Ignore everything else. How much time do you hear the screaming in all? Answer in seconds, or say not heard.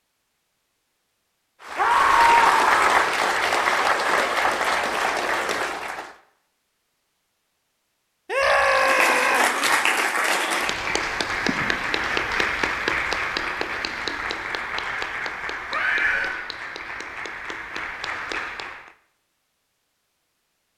3 s.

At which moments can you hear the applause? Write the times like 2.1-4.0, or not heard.
1.6-6.2, 8.6-18.9.